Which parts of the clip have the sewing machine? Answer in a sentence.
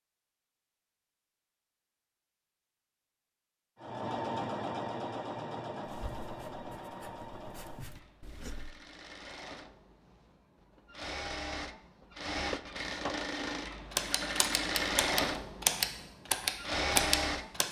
The sewing machine can be heard from 3.8 to 17.6 s.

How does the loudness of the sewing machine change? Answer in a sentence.
The volume of the sewing machine goes down, then up.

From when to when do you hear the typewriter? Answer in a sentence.
You can hear the typewriter from 13.9 to 17.6 s.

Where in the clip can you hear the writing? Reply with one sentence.
The writing can be heard from 5.8 to 8.8 s.